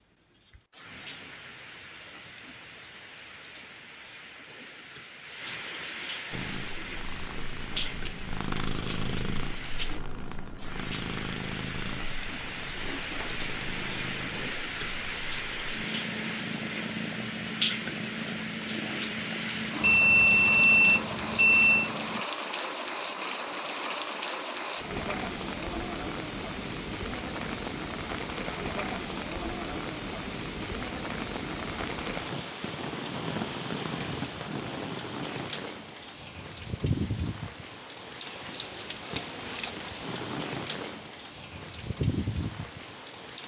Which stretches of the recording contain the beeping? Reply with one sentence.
You can hear the beeping from 19.8 to 21.9 s.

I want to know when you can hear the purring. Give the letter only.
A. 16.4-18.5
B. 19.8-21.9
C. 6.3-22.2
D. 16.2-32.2
C.